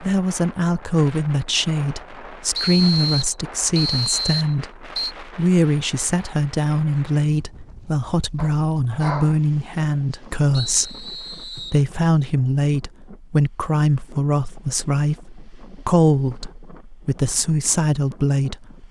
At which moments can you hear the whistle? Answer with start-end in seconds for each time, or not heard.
2.5-5.2, 10.5-11.8.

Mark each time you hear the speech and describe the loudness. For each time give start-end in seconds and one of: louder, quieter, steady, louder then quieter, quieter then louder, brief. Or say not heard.
0.0-18.8 steady.